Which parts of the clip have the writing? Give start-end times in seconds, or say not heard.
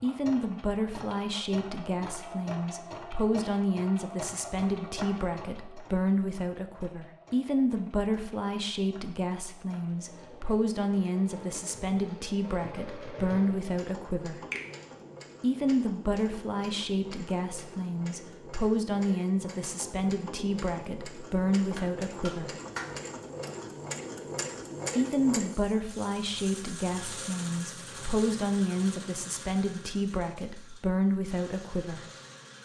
not heard.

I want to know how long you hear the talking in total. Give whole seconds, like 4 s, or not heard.
29 s.